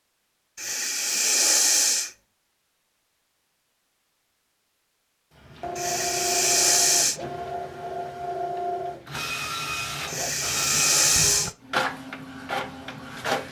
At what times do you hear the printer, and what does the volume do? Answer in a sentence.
The printer can be heard from 5.3 to 13.4 s, at a steady volume.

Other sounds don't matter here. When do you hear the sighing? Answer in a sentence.
The sighing can be heard from 0.6 to 2.1 s, from 5.8 to 7.2 s and from 10.1 to 11.6 s.